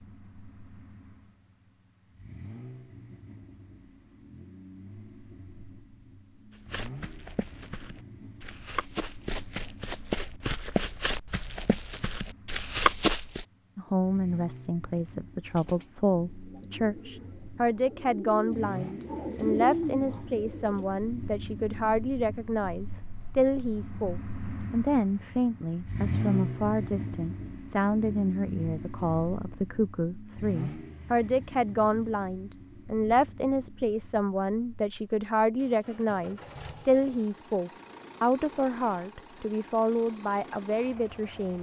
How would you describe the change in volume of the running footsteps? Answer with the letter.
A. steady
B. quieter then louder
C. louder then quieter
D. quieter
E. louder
E.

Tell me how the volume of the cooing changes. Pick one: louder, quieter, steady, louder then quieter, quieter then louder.
louder.